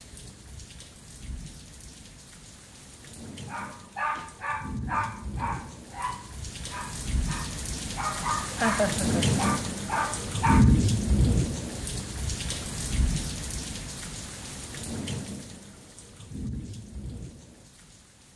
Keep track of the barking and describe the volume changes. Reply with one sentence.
The volume of the barking goes down, then up.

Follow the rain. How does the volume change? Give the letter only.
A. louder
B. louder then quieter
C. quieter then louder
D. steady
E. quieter
B.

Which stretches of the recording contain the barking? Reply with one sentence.
You can hear the barking from 3.5 to 10.8 s.